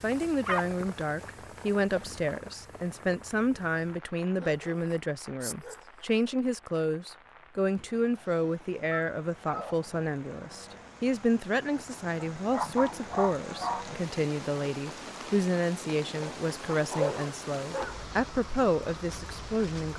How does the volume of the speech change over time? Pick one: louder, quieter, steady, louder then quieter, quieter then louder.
steady.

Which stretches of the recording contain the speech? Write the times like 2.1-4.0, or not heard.
0.0-19.9.